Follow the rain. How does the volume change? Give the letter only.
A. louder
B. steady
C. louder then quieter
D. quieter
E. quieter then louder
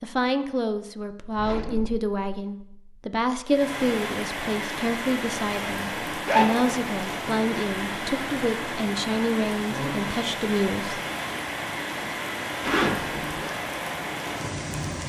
B.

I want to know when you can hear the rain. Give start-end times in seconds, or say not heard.
3.5-15.0.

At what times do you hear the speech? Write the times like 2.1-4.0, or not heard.
0.0-11.0.